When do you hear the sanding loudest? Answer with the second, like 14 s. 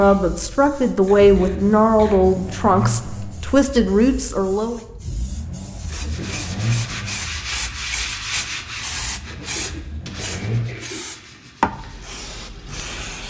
8 s.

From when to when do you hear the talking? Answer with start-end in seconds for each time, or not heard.
0.0-4.8.